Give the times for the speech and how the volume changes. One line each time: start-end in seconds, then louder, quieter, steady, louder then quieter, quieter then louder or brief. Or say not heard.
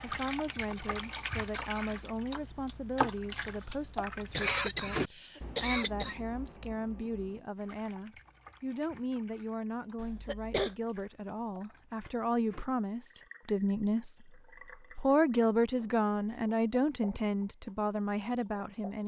0.0-19.0 louder.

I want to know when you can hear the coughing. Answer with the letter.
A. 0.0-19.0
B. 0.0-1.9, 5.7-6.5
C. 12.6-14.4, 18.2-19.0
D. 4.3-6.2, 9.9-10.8
D.